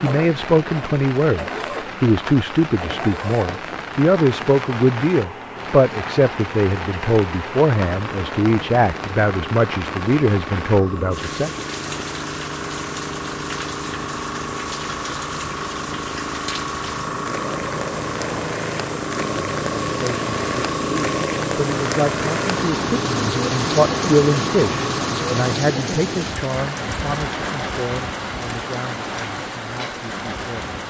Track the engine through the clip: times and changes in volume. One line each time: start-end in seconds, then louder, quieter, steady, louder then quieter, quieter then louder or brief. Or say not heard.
0.0-25.6 louder.